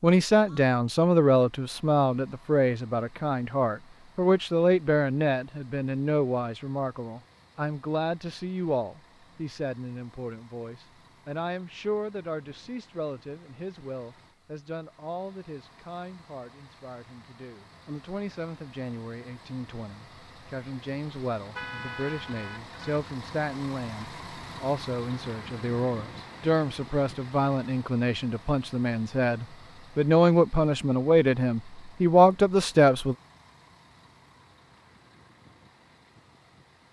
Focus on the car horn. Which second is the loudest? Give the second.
22 s.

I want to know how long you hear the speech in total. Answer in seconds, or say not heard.
33 s.